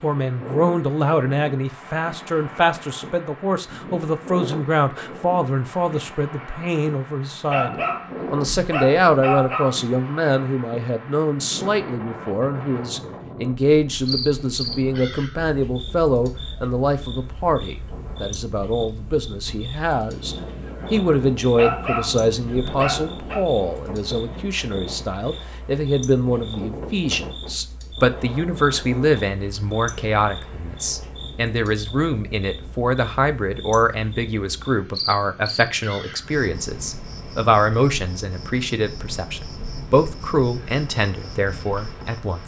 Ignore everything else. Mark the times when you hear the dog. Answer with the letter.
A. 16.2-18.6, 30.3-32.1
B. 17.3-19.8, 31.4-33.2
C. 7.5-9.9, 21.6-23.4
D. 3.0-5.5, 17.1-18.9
C.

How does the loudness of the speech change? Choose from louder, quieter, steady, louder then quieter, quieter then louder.
steady.